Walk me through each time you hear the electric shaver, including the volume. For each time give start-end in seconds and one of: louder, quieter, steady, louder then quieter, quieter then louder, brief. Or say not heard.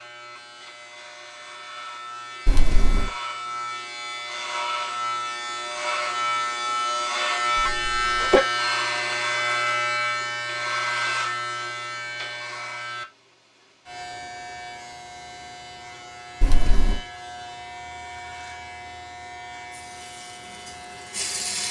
0.0-21.6 louder then quieter.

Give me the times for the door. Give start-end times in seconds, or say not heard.
not heard.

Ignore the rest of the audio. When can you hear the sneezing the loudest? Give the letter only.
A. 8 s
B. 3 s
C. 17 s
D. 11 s
A.